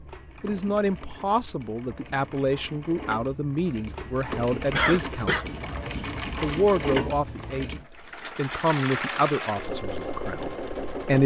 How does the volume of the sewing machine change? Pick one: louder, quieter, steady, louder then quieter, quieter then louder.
louder.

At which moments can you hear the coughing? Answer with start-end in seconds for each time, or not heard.
4.7-5.5.